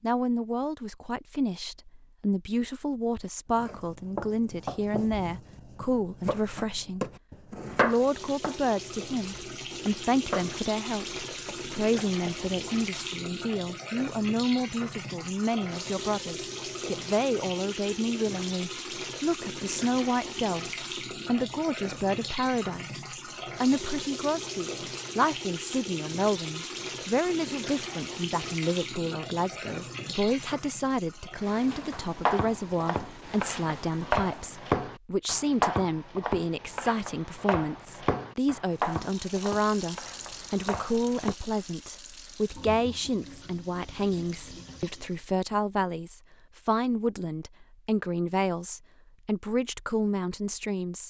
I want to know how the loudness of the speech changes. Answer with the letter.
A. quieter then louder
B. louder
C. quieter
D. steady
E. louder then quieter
D.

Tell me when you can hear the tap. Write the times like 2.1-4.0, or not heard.
7.7-34.7, 38.7-45.3.